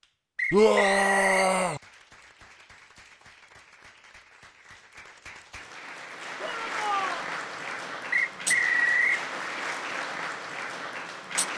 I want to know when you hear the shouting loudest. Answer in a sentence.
The loudest moment of the shouting is at 1 second.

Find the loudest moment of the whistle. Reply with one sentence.
The volume of the whistle peaks at 9 seconds.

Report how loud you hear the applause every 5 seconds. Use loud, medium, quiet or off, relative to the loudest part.
quiet, loud, loud.